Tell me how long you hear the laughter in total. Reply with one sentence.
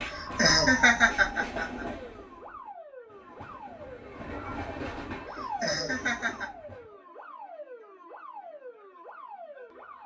The laughter can be heard for 3 seconds in total.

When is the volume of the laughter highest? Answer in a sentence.
The volume of the laughter peaks at 1 second.